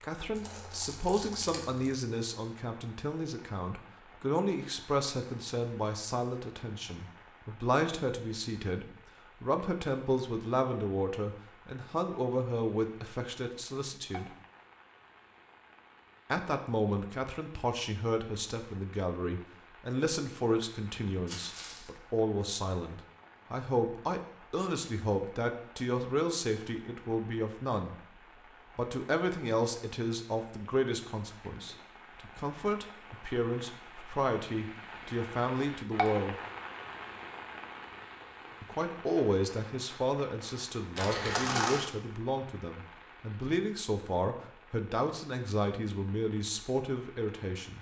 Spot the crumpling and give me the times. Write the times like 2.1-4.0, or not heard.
0.3-1.9, 21.2-21.9, 41.0-41.9.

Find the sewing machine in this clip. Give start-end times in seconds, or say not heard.
not heard.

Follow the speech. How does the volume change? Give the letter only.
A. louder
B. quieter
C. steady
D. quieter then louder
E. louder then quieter
C.